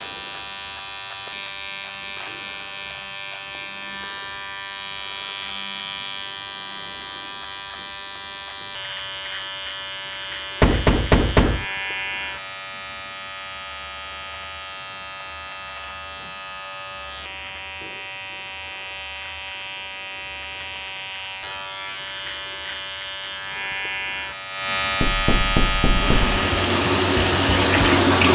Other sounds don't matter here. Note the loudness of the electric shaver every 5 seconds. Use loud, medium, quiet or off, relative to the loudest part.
medium, medium, medium, medium, medium, loud.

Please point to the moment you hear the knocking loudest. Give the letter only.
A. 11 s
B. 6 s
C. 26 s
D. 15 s
A.